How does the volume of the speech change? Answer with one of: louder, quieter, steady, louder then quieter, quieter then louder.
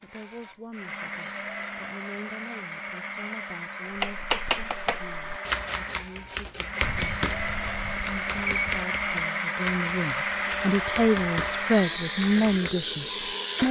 louder.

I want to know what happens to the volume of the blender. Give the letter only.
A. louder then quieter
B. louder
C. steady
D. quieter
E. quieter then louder
B.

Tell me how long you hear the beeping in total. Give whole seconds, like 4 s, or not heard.
2 s.